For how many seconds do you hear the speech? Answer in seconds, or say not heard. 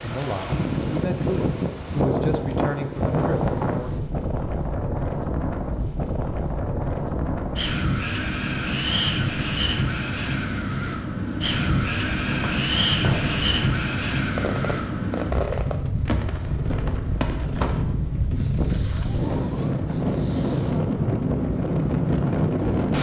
4 s.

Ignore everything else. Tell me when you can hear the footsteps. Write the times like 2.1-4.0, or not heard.
not heard.